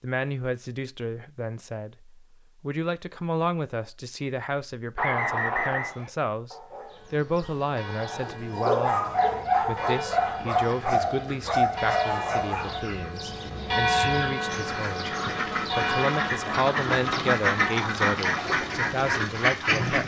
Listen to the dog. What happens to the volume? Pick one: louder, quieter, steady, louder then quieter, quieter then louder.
louder.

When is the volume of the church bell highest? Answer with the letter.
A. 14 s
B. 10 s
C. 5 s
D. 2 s
A.